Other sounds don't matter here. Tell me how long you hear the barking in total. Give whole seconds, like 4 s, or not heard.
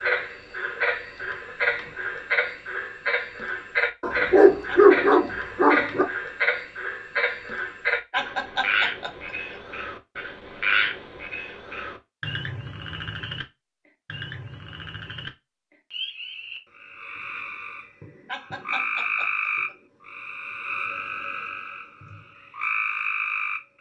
2 s.